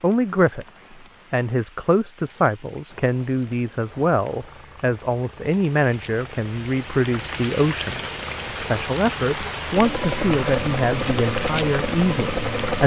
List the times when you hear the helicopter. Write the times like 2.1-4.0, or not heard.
2.9-12.8.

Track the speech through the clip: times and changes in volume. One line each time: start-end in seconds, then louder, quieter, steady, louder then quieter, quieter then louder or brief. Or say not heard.
0.0-0.7 brief
1.3-12.8 steady.